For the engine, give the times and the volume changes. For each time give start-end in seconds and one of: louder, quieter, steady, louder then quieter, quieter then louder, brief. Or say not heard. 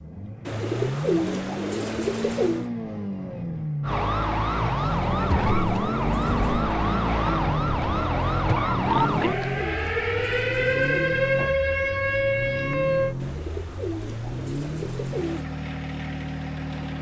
0.0-16.9 steady.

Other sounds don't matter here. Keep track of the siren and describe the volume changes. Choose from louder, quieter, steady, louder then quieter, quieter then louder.
steady.